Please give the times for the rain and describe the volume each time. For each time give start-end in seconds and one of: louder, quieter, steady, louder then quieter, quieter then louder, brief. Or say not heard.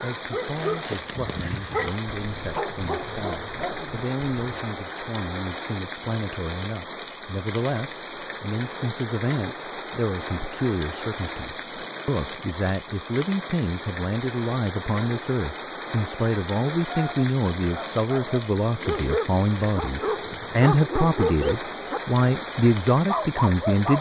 0.0-23.9 steady.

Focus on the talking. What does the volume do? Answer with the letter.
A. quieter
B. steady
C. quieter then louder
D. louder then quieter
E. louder
E.